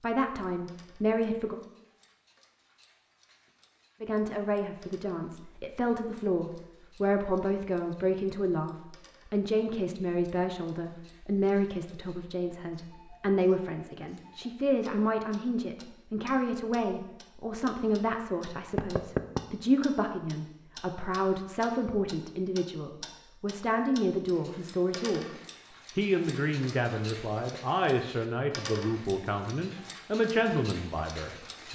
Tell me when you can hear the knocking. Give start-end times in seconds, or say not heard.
18.8-19.4.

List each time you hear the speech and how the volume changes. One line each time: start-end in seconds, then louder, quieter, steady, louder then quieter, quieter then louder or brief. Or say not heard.
0.0-1.6 brief
4.0-25.3 steady
25.9-31.7 steady.